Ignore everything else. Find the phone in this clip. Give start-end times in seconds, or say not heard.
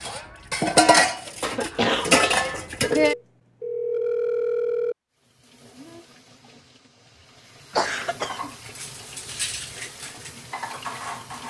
2.9-5.0.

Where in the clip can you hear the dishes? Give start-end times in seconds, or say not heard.
0.0-3.1, 7.7-11.4.